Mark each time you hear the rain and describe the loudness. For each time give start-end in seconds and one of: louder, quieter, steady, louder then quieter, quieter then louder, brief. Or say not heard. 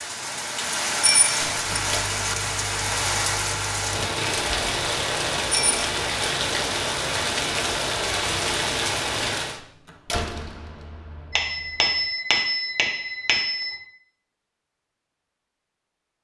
0.0-9.6 steady.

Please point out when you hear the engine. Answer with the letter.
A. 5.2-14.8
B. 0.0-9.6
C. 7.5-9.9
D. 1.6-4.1
D.